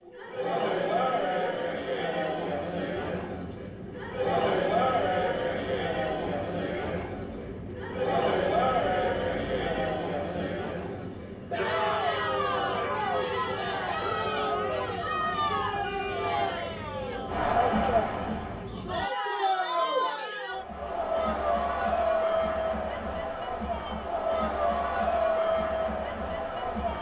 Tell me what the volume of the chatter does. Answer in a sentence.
The loudness of the chatter stays about the same.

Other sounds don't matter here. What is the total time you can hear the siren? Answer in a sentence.
You can't hear the siren here.